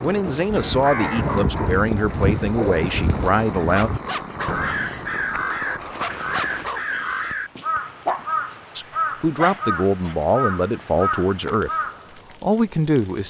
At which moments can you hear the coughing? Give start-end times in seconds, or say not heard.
not heard.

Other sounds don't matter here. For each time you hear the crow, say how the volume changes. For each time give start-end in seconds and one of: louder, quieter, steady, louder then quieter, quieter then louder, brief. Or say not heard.
0.5-12.2 steady.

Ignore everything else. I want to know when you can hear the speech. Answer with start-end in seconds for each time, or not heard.
0.0-3.9, 8.8-11.8, 12.4-13.2.